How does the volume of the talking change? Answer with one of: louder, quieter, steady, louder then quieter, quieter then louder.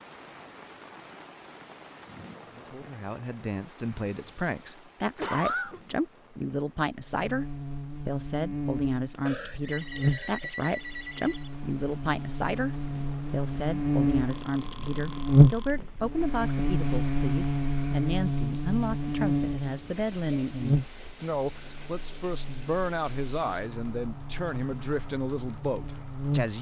steady.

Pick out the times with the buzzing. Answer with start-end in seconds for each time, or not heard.
7.0-26.5.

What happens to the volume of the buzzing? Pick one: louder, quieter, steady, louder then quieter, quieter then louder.
louder then quieter.